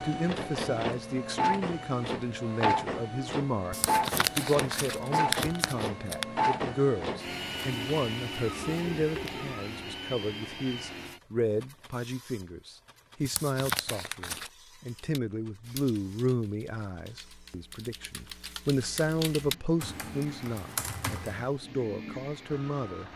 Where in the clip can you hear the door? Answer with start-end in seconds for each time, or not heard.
not heard.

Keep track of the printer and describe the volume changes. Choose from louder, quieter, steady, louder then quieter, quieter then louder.
quieter then louder.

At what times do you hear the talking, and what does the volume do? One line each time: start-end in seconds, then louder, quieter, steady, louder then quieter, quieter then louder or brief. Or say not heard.
0.0-23.1 steady.